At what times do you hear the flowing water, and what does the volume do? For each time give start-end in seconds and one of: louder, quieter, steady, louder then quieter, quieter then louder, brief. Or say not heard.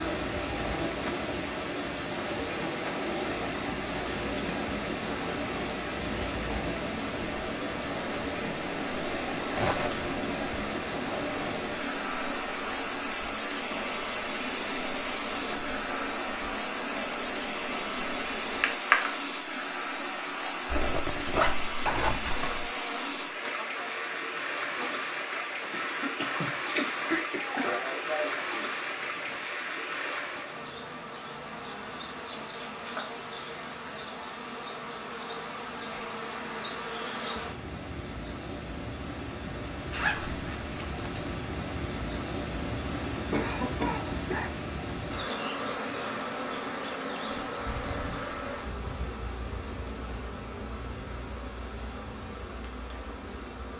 0.0-30.6 steady.